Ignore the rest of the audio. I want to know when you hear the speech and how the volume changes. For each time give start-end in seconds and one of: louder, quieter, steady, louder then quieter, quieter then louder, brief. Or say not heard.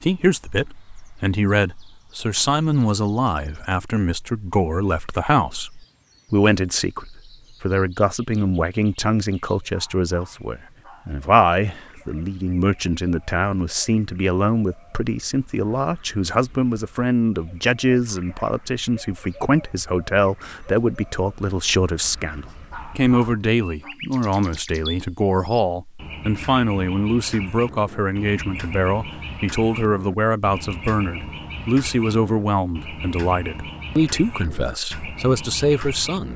0.0-36.3 steady.